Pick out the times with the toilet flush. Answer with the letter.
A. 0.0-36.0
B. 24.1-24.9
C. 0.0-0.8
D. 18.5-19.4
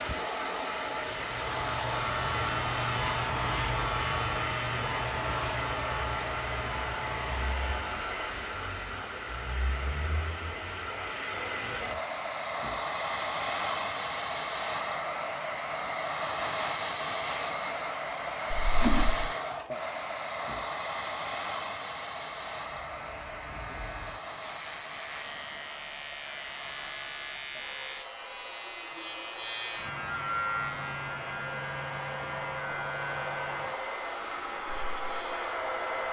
D.